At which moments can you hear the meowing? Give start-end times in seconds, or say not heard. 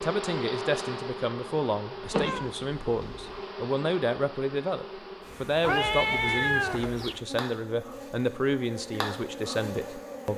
2.0-3.5, 5.6-7.2.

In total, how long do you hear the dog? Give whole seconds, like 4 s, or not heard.
not heard.